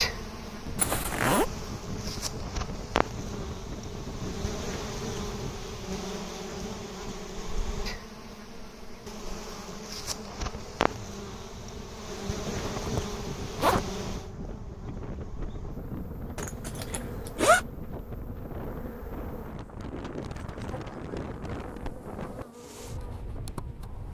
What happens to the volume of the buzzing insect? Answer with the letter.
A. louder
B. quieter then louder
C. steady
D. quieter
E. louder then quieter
D.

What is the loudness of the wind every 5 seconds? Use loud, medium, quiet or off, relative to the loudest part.
loud, medium, loud, loud, loud.